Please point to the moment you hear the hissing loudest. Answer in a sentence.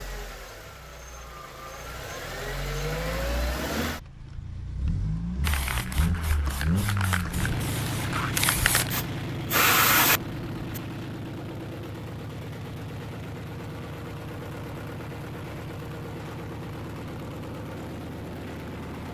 The volume of the hissing peaks at 10 seconds.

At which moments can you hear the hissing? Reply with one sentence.
You can hear the hissing from 5.4 to 10.8 s.